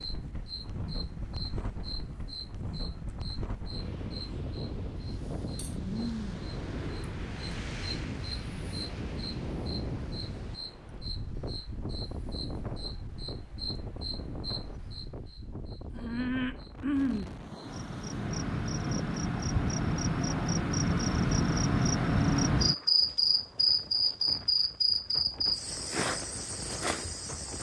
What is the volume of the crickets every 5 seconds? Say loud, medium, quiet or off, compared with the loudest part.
quiet, quiet, quiet, medium, loud, medium.